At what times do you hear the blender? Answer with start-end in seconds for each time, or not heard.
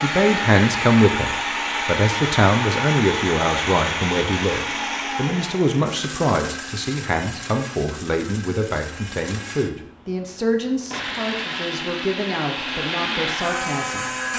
0.0-14.3.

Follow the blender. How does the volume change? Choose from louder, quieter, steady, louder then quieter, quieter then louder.
quieter then louder.